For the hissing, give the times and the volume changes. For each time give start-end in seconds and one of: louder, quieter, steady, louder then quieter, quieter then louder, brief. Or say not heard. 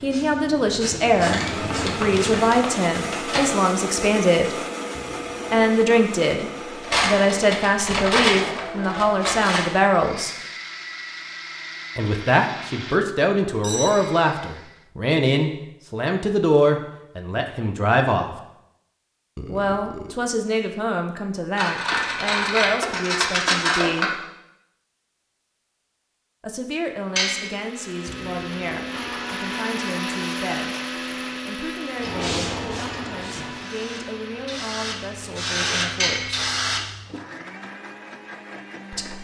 0.0-2.5 brief
31.9-36.9 quieter then louder.